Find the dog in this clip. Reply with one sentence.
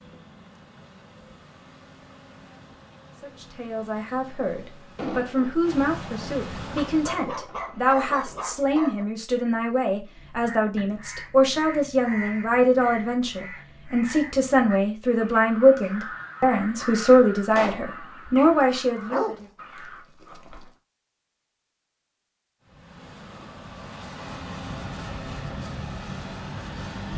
You can hear the dog from 6.8 to 9.1 s and from 18.6 to 20.6 s.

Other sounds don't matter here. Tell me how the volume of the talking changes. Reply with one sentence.
The volume of the talking goes up.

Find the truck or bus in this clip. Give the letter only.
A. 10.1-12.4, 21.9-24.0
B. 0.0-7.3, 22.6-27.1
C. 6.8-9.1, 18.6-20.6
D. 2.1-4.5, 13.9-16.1
B.